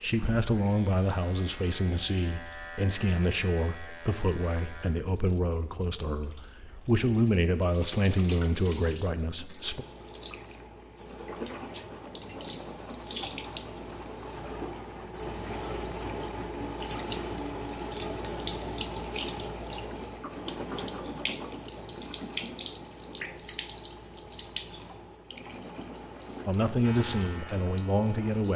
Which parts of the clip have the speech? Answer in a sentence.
The speech can be heard from 0.0 to 9.8 s and from 26.4 to 28.5 s.